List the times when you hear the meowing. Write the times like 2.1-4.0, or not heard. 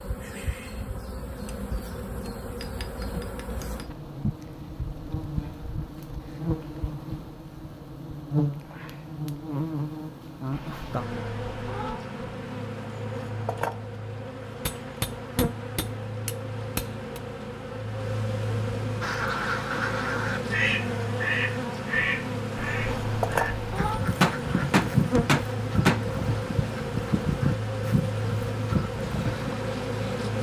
10.5-12.0, 22.6-24.0.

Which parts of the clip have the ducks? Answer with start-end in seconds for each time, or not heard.
19.0-29.5.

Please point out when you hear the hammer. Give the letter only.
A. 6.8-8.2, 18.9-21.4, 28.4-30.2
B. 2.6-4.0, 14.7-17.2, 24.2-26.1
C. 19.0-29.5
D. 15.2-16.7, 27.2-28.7
B.